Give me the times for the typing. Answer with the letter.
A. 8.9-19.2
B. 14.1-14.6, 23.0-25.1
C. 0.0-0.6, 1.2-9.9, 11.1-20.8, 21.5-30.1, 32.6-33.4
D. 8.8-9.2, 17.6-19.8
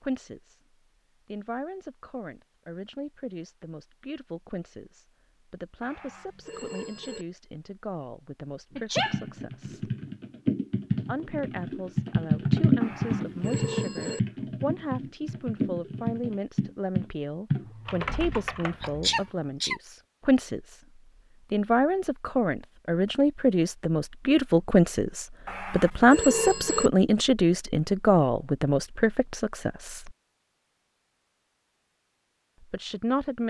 A.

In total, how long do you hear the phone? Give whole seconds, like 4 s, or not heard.
4 s.